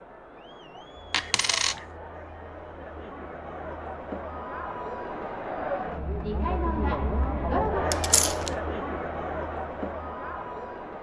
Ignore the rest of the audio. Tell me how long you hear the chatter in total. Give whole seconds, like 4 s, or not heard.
11 s.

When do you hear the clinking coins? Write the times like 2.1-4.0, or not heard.
1.1-1.9, 7.9-8.6.